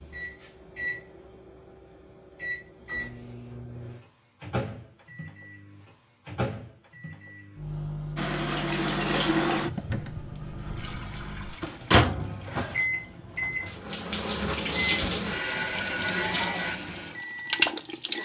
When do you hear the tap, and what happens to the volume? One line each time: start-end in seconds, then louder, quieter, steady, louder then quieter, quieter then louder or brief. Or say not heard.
8.2-18.2 quieter then louder.